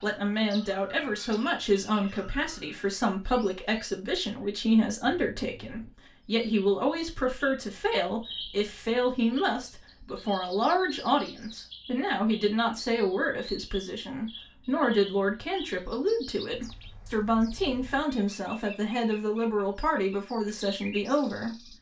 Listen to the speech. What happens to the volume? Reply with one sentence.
The loudness of the speech stays about the same.